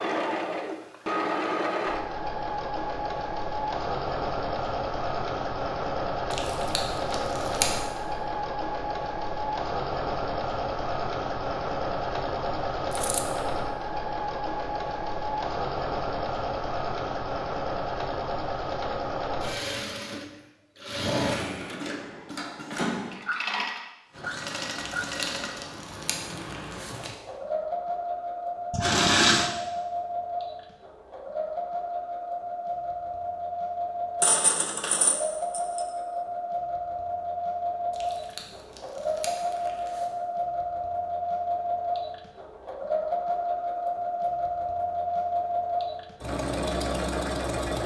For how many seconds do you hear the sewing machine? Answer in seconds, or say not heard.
48 s.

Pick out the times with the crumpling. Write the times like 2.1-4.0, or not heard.
6.3-7.8, 24.8-27.1, 37.9-40.1.